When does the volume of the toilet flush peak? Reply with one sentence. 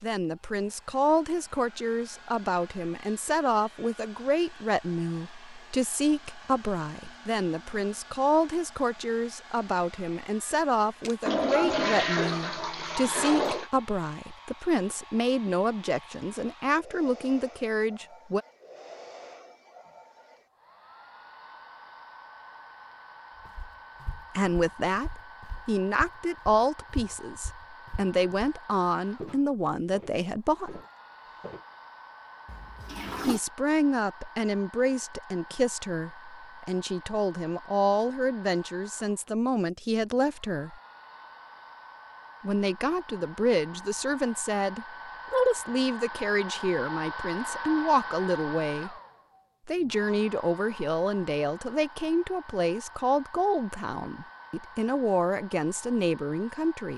The loudest moment of the toilet flush is at 12 seconds.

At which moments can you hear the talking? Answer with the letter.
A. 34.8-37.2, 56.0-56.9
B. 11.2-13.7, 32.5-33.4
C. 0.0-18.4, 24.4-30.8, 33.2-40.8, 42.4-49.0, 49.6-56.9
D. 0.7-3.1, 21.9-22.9
C.